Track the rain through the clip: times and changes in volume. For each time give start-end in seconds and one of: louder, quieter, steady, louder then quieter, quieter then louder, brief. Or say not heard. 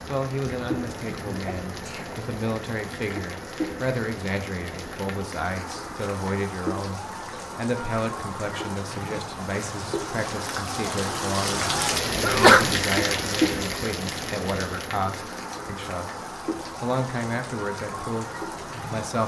0.0-19.2 louder then quieter.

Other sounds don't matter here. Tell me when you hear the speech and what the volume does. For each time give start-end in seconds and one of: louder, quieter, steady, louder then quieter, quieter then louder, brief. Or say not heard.
0.1-19.2 steady.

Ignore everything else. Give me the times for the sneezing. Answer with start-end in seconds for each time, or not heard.
1.4-2.1, 12.2-12.7.